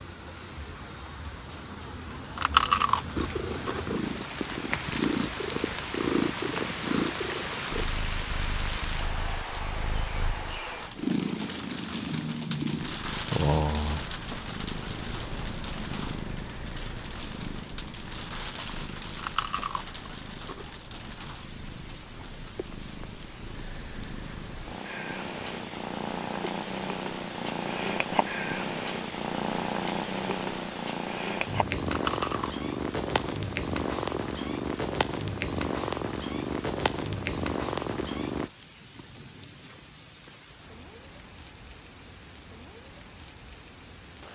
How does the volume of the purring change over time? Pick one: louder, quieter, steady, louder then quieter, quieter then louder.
quieter then louder.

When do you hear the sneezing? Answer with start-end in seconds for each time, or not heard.
not heard.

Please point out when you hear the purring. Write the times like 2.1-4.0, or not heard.
3.1-38.5.